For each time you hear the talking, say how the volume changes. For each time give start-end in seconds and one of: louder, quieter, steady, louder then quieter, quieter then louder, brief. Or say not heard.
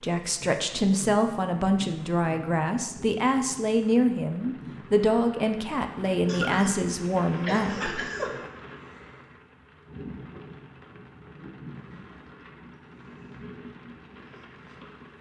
0.0-8.0 steady.